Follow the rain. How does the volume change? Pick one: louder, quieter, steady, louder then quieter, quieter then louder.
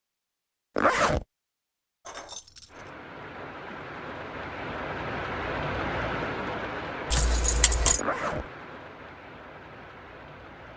louder then quieter.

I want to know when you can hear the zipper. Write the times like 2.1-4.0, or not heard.
0.8-1.2, 8.0-8.4.